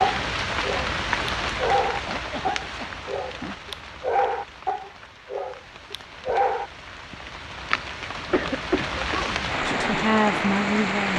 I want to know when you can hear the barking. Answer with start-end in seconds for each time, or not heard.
0.0-6.7.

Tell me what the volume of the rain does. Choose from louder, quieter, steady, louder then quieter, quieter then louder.
quieter then louder.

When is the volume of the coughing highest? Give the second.
9 s.